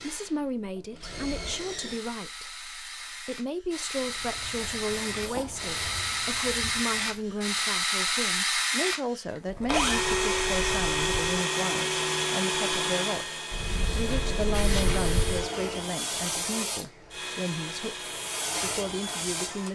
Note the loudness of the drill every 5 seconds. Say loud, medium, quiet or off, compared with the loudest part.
medium, loud, loud, medium.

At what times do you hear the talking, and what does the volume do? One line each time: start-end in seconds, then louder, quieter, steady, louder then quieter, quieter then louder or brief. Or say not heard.
0.0-19.7 steady.